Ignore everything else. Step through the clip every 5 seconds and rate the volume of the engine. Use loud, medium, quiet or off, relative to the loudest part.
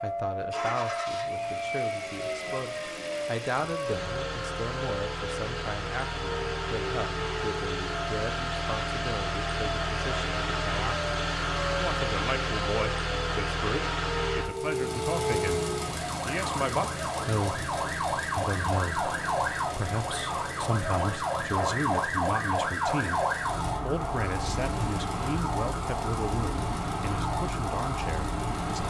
medium, loud, loud, medium, medium, medium.